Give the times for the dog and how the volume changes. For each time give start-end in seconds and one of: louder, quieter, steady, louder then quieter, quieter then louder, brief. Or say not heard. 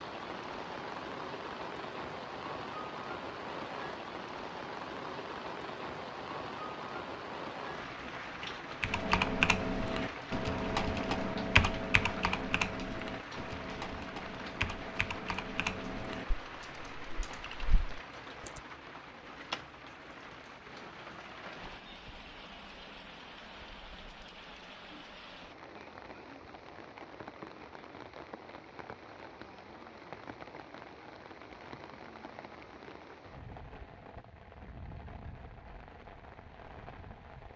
not heard.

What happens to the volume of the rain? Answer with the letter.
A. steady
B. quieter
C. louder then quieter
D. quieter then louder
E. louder
B.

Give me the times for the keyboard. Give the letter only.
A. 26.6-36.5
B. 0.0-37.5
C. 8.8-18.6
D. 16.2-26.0
C.